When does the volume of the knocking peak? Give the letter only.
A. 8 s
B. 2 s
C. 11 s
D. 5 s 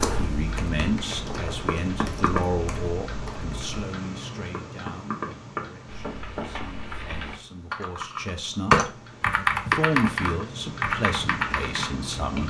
B.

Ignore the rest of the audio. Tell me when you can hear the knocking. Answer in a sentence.
The knocking can be heard from 1.6 to 2.5 s, from 4.5 to 6.7 s and from 9.7 to 10.4 s.